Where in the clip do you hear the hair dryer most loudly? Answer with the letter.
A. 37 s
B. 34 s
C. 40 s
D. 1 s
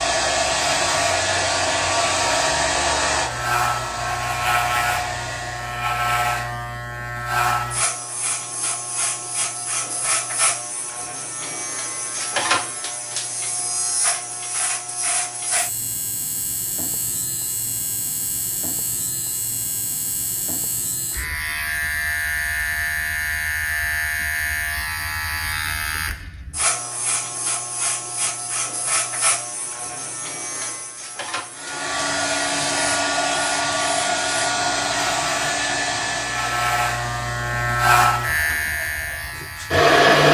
C.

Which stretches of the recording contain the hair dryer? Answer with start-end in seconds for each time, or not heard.
0.0-5.8, 31.6-40.2.